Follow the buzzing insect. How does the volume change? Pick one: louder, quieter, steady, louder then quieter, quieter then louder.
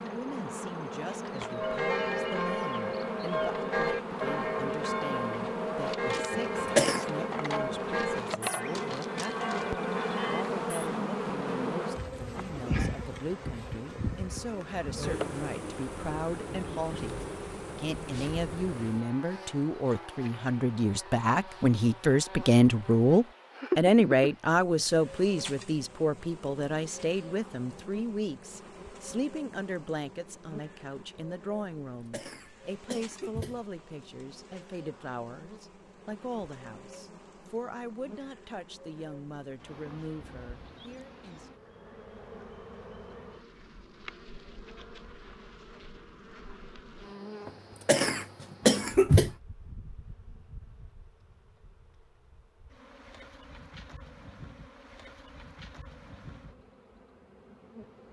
quieter.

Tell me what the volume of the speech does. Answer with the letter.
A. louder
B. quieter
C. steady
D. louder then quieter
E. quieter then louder
D.